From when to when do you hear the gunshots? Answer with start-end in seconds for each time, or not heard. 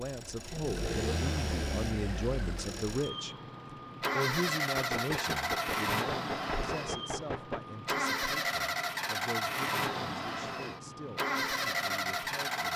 4.8-7.7.